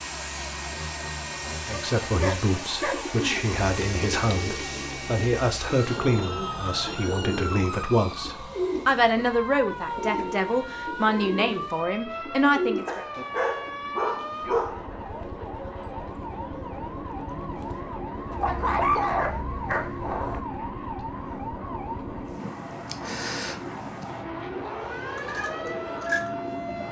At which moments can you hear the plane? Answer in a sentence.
The plane can be heard from 0.0 to 26.8 s.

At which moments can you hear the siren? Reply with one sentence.
You can hear the siren from 0.0 to 26.8 s.